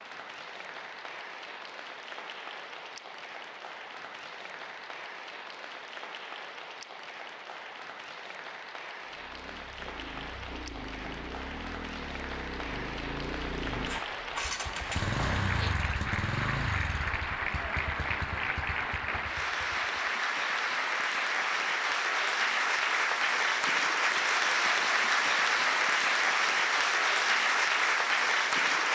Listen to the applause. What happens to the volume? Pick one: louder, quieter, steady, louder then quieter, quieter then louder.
louder.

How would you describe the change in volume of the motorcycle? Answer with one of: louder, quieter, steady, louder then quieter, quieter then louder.
louder then quieter.